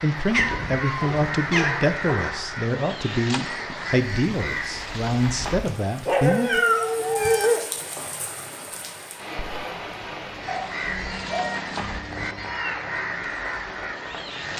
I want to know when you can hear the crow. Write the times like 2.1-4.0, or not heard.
0.0-5.7, 10.4-14.5.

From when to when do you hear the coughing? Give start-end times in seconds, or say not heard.
not heard.